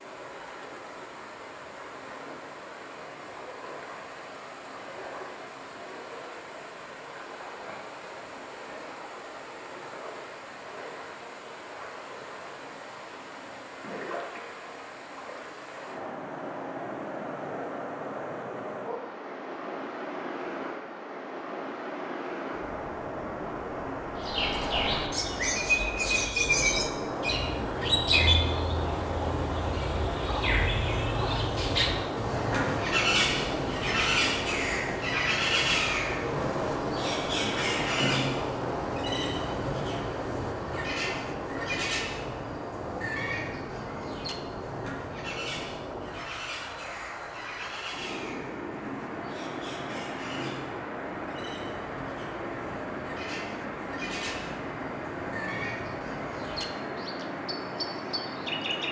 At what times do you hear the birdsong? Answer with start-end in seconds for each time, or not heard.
24.1-58.8.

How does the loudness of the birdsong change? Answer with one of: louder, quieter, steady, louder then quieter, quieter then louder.
quieter.